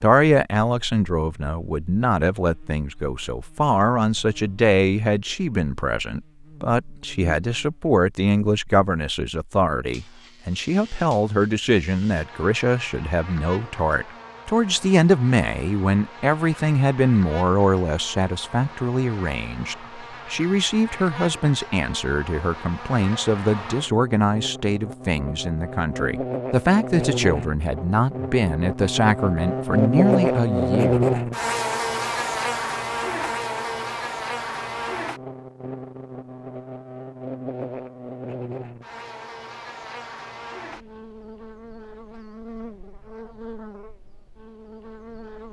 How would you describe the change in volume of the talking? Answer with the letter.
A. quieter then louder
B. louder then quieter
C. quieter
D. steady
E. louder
D.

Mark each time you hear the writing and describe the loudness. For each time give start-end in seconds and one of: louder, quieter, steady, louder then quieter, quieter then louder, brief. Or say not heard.
not heard.